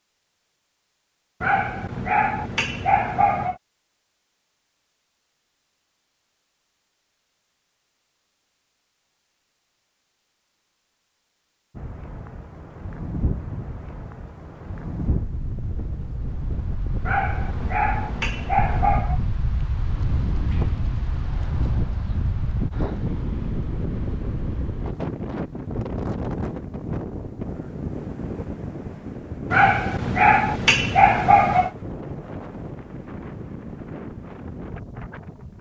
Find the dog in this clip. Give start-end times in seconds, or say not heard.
1.4-3.5, 17.0-19.2, 29.5-31.7.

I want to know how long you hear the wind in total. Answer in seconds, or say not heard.
24 s.